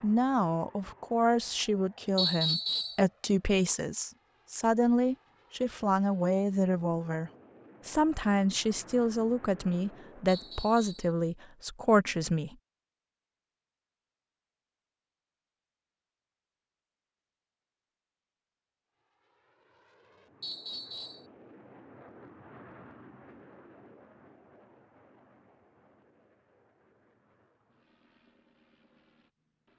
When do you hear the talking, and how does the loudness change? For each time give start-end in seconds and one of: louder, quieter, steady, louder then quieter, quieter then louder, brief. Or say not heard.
0.0-12.6 steady.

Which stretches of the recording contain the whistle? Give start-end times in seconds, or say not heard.
2.1-3.0, 10.2-11.1, 20.4-21.2.